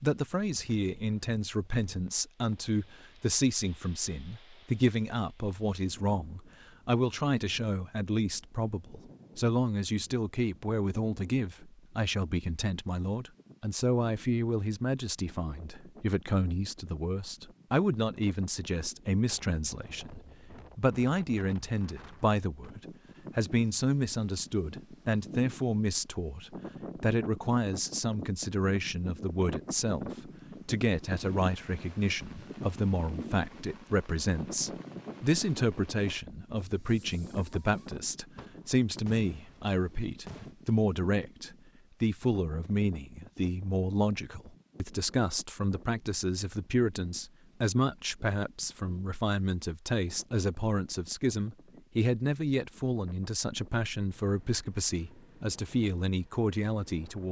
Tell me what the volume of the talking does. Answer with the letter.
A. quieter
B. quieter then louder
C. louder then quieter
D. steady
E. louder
D.